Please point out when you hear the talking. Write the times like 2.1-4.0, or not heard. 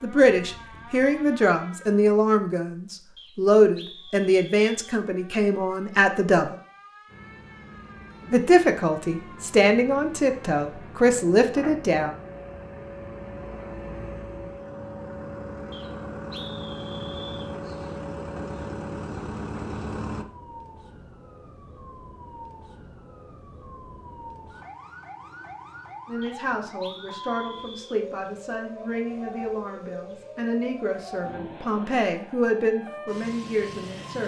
0.0-6.5, 8.3-12.2, 26.1-34.2.